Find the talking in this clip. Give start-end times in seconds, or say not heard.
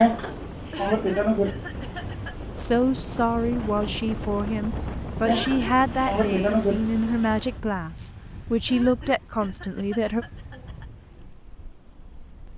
2.5-10.2.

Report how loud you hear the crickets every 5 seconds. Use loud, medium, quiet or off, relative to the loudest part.
loud, loud, quiet.